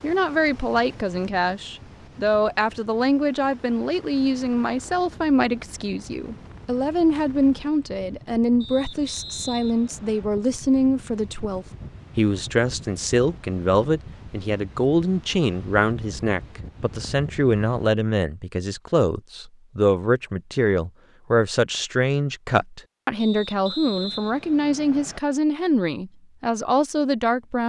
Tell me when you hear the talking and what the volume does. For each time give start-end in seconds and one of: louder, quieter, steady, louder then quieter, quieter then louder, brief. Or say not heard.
0.0-27.6 steady.